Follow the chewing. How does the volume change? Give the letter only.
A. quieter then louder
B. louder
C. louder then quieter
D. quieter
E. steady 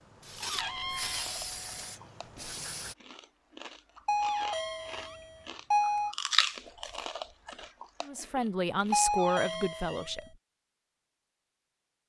C.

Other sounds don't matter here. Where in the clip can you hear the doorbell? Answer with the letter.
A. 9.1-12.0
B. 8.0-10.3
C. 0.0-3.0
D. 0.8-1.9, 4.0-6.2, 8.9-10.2
D.